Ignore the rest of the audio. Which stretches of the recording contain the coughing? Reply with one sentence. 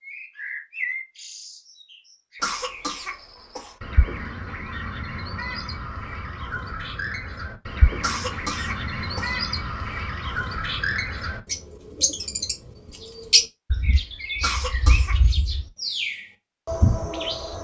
You can hear the coughing from 2.4 to 3.8 s, from 8.0 to 9.4 s and from 14.4 to 15.2 s.